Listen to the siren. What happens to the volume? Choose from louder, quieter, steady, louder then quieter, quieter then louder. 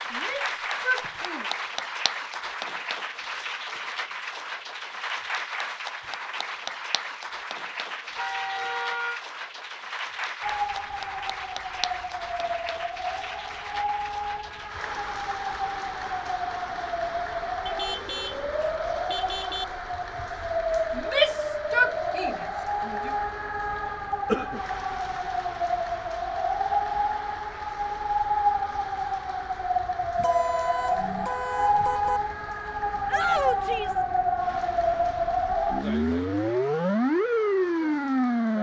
louder.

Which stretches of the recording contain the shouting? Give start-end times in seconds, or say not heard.
0.1-1.4, 20.9-22.9, 33.0-34.0.